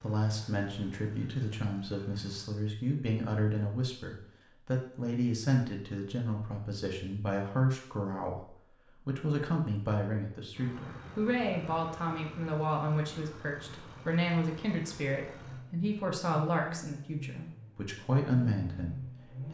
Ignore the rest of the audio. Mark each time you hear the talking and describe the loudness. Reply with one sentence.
You can hear the talking from 0.0 to 19.4 s, at a steady volume.